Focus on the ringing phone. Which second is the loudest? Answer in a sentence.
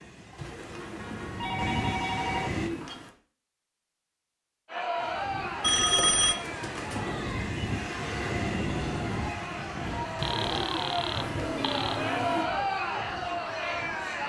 The volume of the ringing phone peaks at 6 seconds.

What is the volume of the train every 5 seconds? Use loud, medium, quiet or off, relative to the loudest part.
loud, loud, medium.